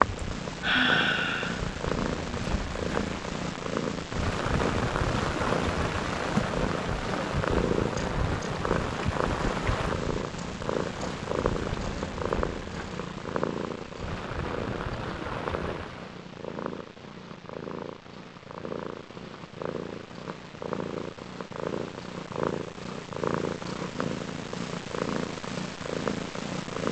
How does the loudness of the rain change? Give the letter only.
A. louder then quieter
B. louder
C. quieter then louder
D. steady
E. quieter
A.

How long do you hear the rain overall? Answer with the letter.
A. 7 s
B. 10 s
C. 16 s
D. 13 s
C.